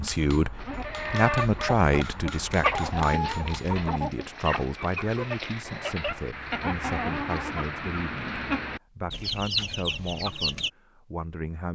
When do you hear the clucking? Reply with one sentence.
The clucking can be heard from 0.6 to 10.7 s.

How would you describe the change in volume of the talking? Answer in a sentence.
The volume of the talking goes down.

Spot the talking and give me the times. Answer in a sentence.
The talking can be heard from 0.0 to 11.6 s.